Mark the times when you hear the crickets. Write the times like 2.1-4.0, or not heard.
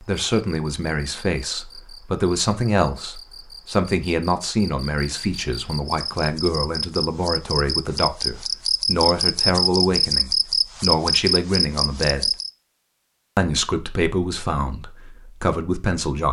0.0-12.5.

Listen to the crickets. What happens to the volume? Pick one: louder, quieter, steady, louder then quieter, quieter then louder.
louder.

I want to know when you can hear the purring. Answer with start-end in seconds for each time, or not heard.
not heard.